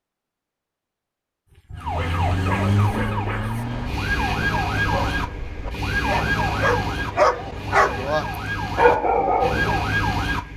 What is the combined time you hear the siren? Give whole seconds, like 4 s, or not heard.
9 s.